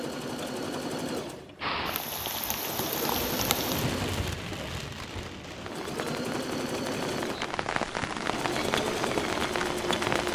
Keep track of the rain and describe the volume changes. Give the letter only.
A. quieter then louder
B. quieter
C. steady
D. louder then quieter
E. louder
A.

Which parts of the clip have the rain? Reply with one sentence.
You can hear the rain from 1.6 to 10.3 s.